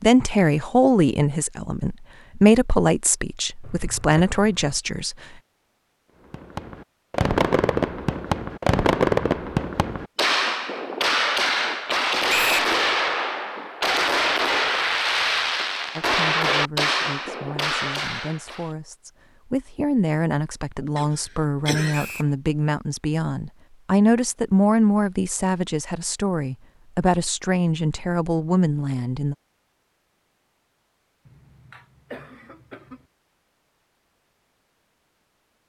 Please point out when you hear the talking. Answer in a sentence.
The talking can be heard from 0.0 to 5.2 s and from 15.9 to 29.4 s.